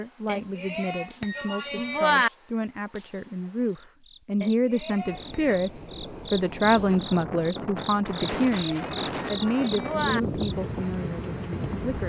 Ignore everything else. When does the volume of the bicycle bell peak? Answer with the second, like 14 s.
2 s.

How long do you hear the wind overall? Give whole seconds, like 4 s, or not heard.
7 s.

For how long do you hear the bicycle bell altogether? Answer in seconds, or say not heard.
5 s.